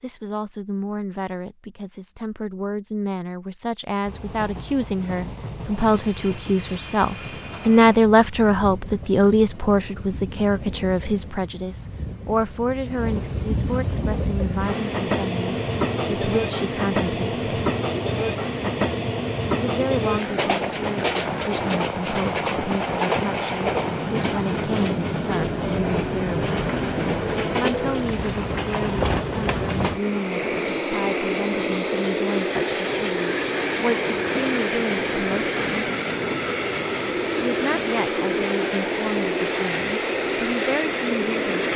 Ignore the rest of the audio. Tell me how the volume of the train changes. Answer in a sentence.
The volume of the train goes up.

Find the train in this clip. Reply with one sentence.
You can hear the train from 4.0 to 41.7 s.